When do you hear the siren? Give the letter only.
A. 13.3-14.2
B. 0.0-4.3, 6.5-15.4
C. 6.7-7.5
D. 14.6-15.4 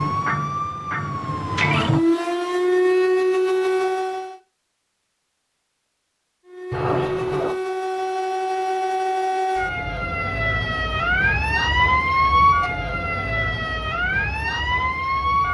B.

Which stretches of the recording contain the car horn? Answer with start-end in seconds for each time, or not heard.
6.7-7.5.